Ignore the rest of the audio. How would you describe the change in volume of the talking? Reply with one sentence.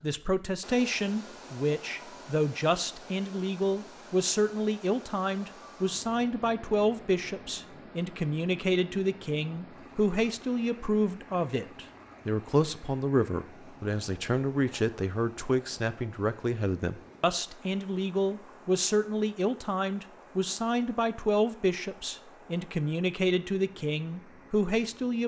The volume of the talking stays about the same.